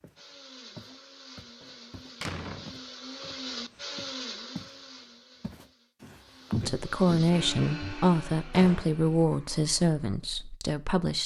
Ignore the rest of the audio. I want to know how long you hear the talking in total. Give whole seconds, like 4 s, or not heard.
5 s.